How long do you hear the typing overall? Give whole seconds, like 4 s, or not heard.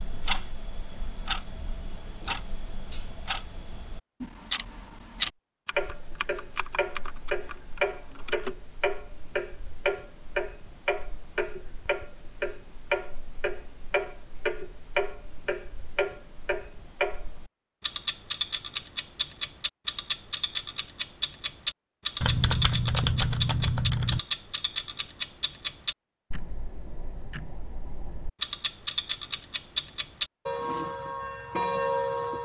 5 s.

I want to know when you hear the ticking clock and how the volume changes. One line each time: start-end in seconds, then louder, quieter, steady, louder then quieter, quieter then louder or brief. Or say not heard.
0.0-32.4 steady.